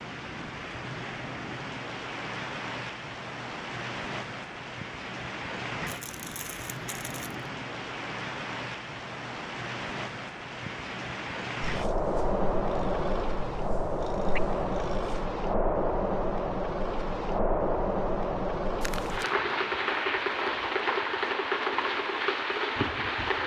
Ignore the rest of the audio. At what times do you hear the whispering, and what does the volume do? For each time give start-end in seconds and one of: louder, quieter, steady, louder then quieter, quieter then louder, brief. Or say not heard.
not heard.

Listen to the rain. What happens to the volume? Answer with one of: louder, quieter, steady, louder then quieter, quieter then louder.
louder.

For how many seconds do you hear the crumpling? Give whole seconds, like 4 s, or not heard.
2 s.